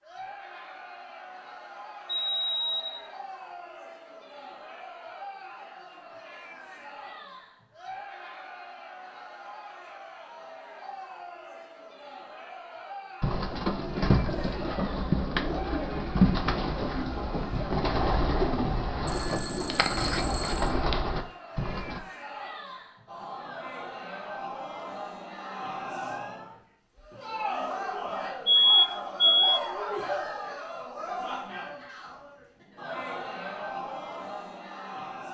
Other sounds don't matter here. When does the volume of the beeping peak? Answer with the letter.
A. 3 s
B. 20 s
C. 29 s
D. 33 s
C.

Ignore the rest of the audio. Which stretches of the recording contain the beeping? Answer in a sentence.
You can hear the beeping from 2.2 to 3.0 s, from 19.1 to 20.8 s and from 28.4 to 29.4 s.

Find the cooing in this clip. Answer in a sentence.
You can hear the cooing from 13.2 to 22.0 s.